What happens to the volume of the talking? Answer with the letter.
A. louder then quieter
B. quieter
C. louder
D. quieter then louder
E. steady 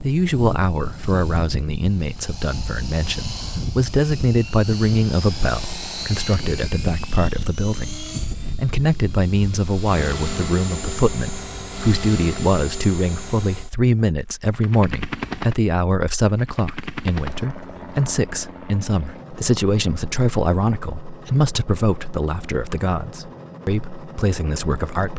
E.